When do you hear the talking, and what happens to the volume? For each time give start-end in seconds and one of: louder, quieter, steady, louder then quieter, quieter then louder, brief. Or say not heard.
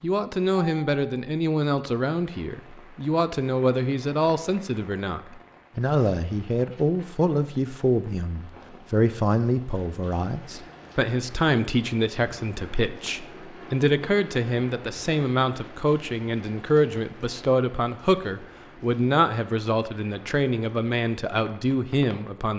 0.0-22.5 steady.